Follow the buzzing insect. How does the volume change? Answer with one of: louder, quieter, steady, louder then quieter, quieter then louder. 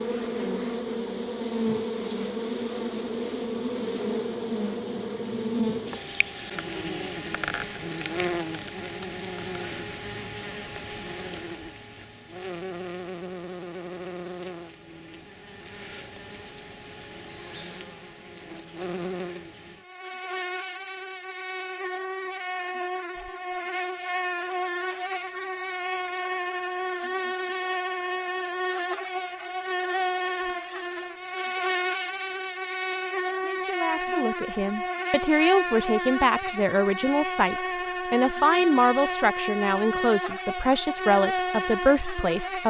quieter then louder.